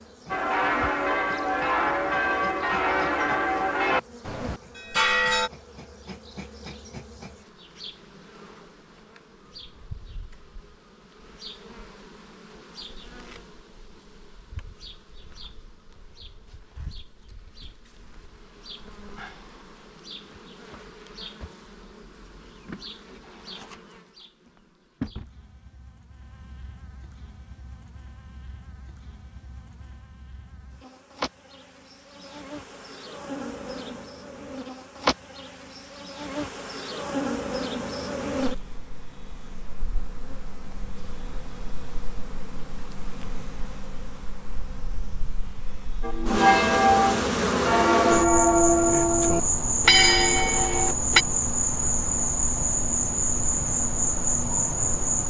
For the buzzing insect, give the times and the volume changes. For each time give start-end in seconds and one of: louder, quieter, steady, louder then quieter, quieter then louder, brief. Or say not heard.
0.0-55.2 louder.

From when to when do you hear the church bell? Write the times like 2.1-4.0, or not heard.
0.3-5.5, 46.0-51.2.